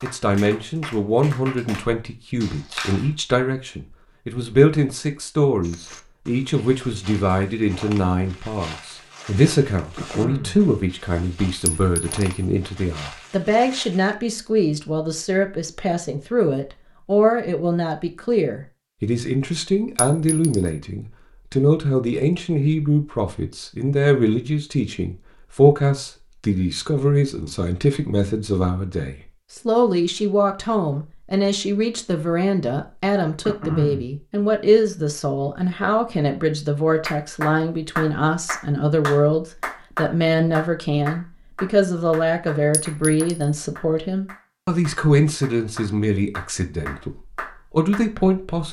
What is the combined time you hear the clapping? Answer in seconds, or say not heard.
14 s.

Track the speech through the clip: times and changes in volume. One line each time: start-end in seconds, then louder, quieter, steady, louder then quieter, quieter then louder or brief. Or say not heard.
0.0-48.6 steady.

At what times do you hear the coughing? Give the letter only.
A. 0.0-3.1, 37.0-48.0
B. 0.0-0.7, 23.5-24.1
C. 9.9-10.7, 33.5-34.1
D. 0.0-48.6
C.